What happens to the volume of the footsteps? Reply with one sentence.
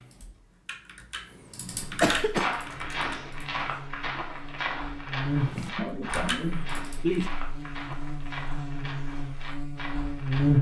The volume of the footsteps goes down.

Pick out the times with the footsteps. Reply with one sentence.
The footsteps can be heard from 2.3 to 10.5 s.